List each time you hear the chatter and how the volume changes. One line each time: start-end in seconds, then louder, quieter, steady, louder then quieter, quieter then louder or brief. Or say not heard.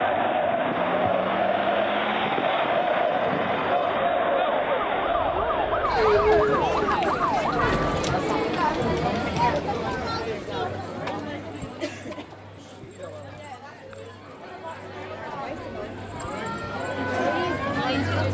0.0-18.2 quieter then louder.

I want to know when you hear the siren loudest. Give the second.
7 s.